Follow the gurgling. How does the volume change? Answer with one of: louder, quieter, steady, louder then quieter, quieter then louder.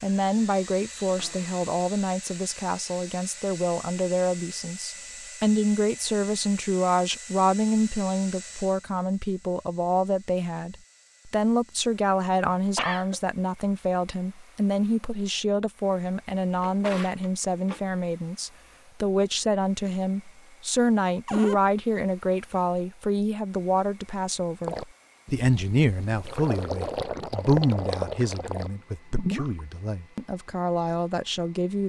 louder.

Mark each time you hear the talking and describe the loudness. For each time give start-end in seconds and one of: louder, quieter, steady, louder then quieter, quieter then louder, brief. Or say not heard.
0.0-31.8 steady.